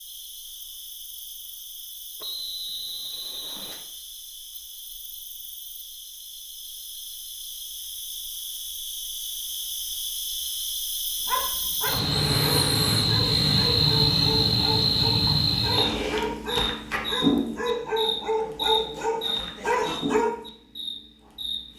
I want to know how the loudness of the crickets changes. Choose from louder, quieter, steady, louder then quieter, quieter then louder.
louder then quieter.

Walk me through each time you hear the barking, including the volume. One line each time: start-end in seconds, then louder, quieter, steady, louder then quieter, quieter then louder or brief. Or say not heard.
11.2-20.3 louder.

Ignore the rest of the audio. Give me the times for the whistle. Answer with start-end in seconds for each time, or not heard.
2.2-3.9.